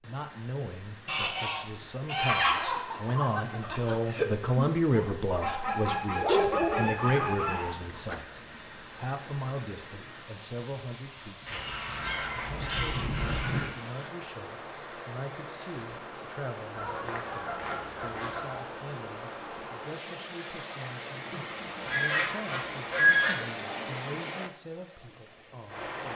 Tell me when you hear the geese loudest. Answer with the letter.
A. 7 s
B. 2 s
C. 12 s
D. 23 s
D.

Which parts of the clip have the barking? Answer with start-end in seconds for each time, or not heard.
2.2-8.2.